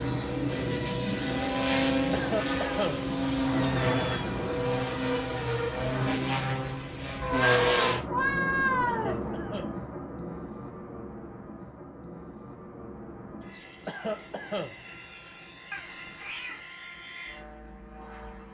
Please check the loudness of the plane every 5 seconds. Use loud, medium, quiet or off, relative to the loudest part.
loud, loud, quiet, quiet.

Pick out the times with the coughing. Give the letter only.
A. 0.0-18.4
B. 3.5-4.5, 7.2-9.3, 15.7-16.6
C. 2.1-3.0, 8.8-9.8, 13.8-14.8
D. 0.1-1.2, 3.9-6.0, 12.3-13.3
C.